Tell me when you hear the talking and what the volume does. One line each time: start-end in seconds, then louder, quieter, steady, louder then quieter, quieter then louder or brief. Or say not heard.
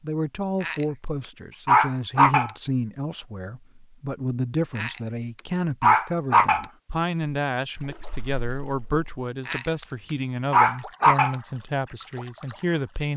0.0-13.1 steady.